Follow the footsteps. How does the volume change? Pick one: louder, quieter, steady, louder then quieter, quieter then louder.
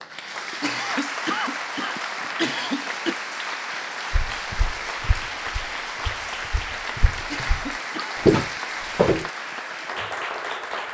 quieter then louder.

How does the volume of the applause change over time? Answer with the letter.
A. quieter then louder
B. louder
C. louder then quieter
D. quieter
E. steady
E.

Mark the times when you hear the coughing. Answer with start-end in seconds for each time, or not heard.
0.5-3.1, 7.2-8.2.